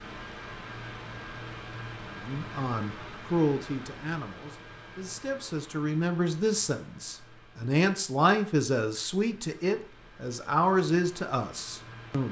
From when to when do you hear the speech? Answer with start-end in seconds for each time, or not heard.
2.2-12.2.